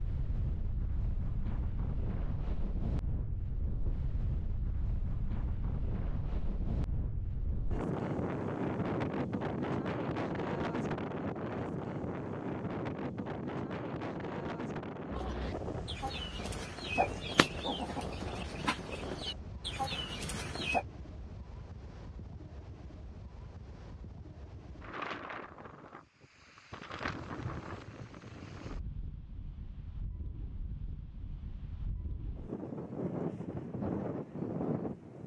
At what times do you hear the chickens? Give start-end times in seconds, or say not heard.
15.1-20.9.